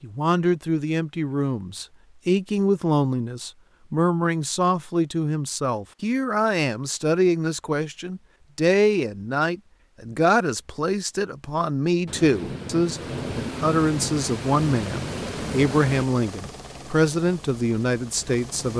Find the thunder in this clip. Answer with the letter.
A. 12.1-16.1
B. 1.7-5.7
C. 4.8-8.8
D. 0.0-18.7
A.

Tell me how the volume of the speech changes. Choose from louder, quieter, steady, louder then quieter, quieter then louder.
steady.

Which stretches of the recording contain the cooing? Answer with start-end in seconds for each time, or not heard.
not heard.